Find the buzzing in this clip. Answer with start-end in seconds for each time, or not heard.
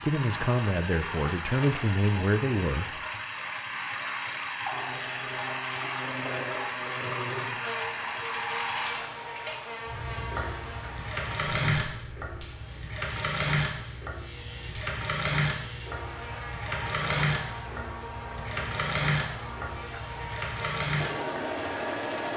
4.7-22.3.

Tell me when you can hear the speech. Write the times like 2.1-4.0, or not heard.
0.0-3.0.